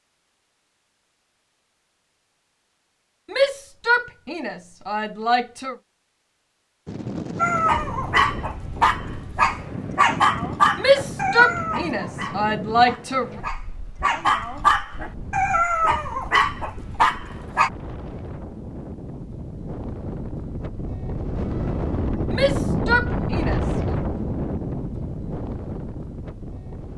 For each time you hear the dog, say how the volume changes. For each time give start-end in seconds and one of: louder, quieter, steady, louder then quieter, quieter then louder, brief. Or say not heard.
7.3-17.7 quieter then louder.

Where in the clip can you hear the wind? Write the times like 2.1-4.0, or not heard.
6.8-26.9.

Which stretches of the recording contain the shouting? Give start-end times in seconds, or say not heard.
3.3-5.8, 10.8-13.3, 22.3-23.9.